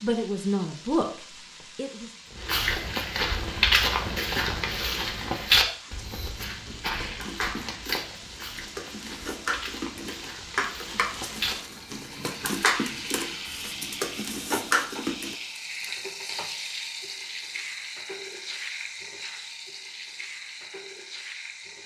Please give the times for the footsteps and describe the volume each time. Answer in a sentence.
You can hear the footsteps from 2.4 to 11.6 s, getting quieter.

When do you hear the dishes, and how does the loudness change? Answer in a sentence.
The dishes can be heard from 5.8 to 15.3 s, getting louder.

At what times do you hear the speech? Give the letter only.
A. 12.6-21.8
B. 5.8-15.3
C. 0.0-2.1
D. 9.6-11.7
C.